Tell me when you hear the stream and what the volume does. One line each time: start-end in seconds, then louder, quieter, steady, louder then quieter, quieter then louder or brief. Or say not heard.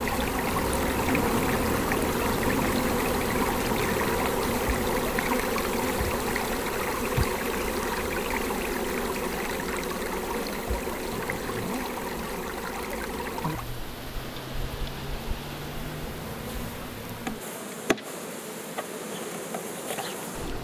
0.0-20.5 quieter.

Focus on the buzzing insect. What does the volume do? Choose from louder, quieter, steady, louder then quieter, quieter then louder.
quieter.